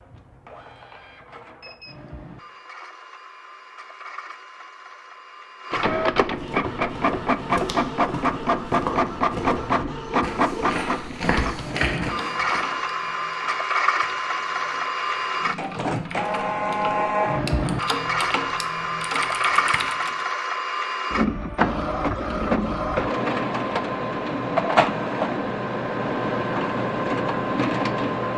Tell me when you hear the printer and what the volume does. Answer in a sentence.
The printer can be heard from 0.0 to 28.3 s, getting louder.